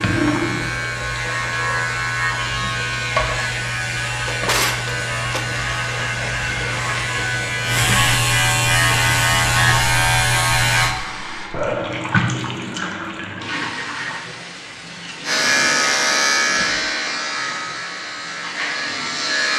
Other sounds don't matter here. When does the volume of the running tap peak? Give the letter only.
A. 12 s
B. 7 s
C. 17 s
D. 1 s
A.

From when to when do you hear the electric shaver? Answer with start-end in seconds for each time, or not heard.
0.0-10.9, 15.2-19.5.